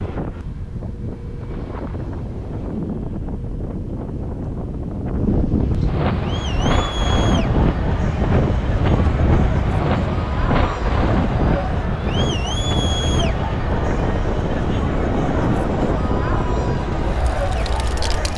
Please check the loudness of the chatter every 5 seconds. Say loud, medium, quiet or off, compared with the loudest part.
off, loud, loud, loud.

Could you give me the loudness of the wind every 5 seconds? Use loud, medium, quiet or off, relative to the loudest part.
medium, loud, loud, loud.